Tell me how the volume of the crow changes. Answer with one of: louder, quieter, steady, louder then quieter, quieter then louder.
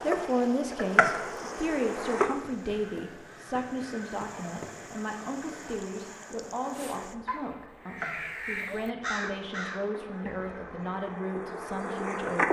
louder.